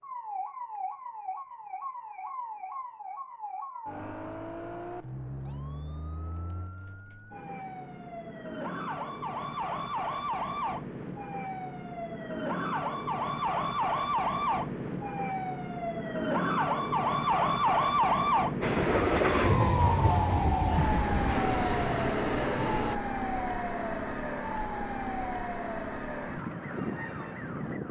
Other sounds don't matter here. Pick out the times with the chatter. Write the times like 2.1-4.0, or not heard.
not heard.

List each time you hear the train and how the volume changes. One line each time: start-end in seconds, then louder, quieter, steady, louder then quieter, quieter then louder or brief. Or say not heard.
18.6-22.9 quieter.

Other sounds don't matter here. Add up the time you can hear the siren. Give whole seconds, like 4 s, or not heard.
28 s.